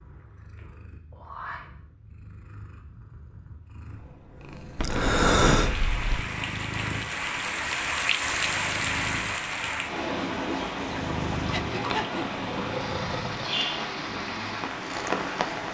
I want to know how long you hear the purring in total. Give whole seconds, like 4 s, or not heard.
16 s.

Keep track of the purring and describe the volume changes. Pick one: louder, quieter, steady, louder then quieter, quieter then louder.
louder.